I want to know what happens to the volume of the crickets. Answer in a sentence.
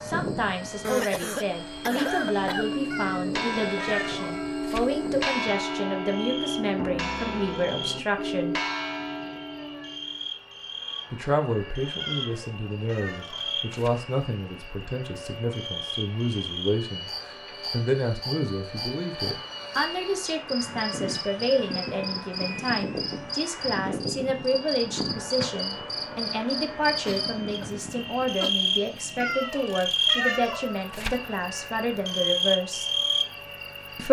The volume of the crickets goes up.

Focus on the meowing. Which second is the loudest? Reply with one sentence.
The loudest moment of the meowing is at 30 seconds.